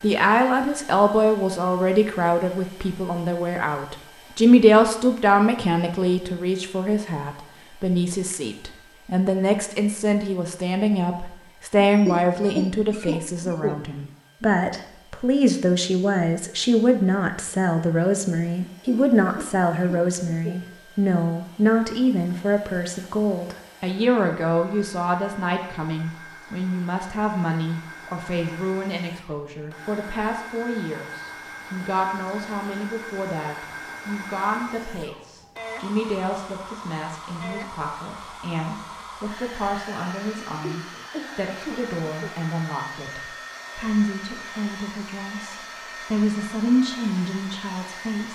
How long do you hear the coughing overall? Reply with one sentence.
The coughing can be heard for 6 seconds in total.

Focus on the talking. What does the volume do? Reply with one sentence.
The volume of the talking goes down.